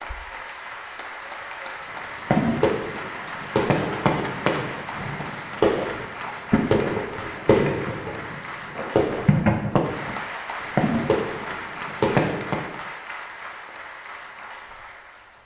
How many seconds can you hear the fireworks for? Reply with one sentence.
The fireworks can be heard for 10 seconds in total.